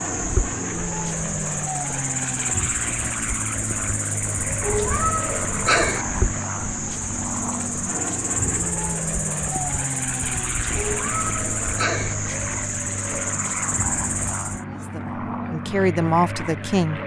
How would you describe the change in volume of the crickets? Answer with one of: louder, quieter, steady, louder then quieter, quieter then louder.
steady.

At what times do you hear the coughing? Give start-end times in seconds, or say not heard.
not heard.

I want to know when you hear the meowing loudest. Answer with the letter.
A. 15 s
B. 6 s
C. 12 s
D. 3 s
B.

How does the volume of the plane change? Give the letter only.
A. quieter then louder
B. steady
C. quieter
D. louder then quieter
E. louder
B.